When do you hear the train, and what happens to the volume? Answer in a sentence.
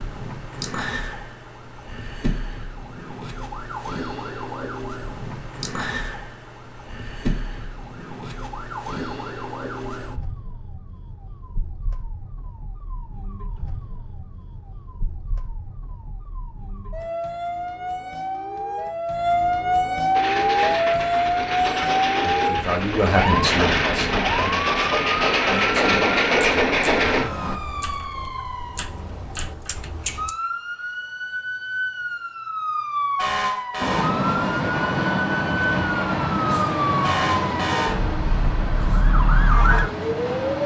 The train can be heard from 20.1 to 27.6 s, getting louder; and from 33.8 to 40.6 s, getting quieter.